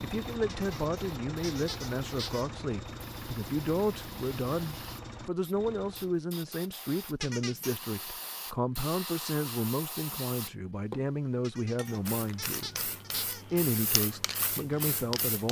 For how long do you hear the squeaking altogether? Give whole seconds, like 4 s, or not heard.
5 s.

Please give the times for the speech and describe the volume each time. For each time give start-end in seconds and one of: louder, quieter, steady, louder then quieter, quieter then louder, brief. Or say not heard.
0.0-15.4 steady.